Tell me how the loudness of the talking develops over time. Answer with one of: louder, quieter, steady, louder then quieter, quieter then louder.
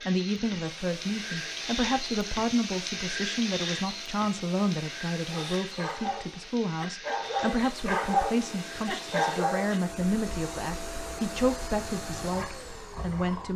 steady.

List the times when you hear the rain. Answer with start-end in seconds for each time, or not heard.
0.0-9.4.